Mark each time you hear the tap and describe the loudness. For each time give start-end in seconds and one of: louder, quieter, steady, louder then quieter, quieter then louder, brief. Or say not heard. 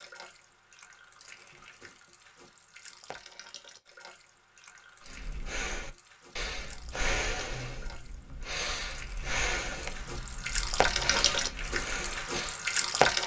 0.0-13.2 louder.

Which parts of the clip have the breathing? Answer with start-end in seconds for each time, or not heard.
5.0-12.6.